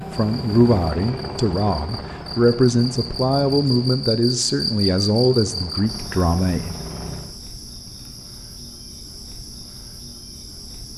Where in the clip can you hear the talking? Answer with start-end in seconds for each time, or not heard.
0.0-6.8.